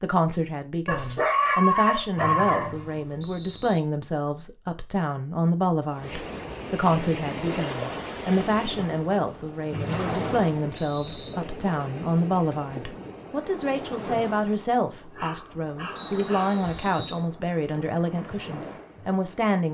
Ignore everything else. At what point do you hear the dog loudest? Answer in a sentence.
The loudest moment of the dog is at 2 seconds.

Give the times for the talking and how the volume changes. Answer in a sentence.
The talking can be heard from 0.0 to 19.7 s, at a steady volume.